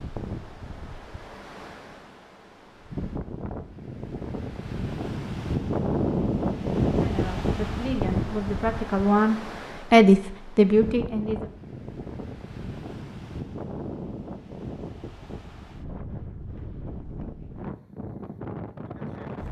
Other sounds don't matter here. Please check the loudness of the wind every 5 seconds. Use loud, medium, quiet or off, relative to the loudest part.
medium, loud, medium, medium.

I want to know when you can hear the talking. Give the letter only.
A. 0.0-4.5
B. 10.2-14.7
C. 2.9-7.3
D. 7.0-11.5
D.